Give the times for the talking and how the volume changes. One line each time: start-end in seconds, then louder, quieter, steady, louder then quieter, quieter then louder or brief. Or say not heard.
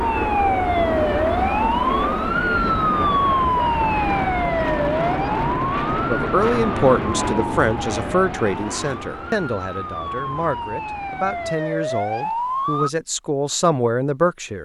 6.1-14.5 quieter then louder.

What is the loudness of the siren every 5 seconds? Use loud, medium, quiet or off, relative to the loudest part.
loud, medium, medium.